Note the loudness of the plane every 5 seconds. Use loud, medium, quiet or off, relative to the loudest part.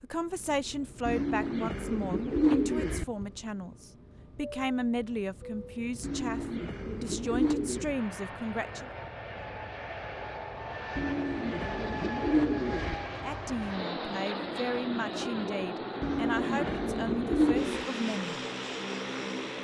quiet, medium, loud, loud.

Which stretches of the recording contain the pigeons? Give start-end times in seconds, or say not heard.
1.1-3.0, 6.0-8.0, 10.9-12.9, 16.0-17.9.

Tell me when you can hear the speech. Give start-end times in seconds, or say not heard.
0.0-8.9, 13.1-18.4.